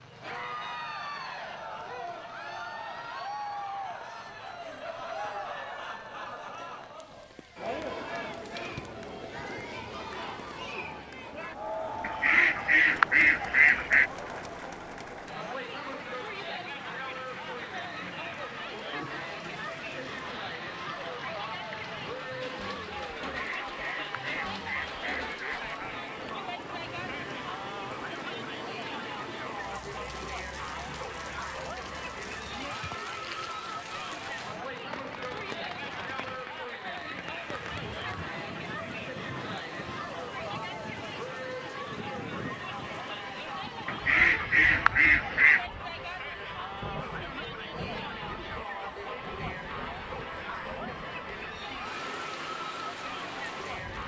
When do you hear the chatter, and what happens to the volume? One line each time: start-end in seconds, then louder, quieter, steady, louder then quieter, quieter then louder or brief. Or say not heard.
0.1-54.0 steady.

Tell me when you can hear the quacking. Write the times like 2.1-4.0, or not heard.
12.0-14.1, 23.3-25.6, 43.9-45.6.